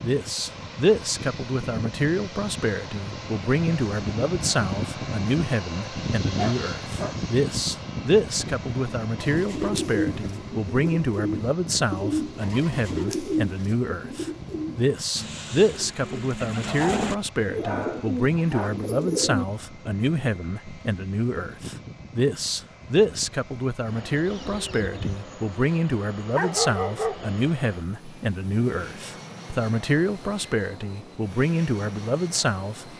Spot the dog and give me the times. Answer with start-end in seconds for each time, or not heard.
6.3-7.2, 16.6-18.7, 26.4-27.4.